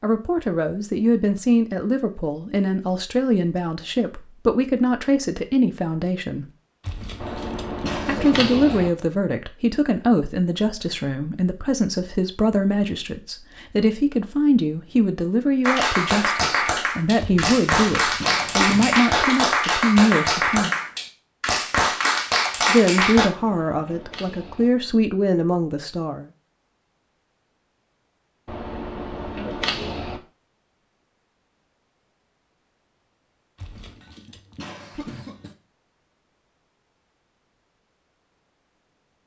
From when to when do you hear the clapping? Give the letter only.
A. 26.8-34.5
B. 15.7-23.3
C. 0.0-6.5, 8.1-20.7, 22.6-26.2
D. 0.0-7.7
B.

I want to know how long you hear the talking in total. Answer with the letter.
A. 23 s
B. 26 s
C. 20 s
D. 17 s
A.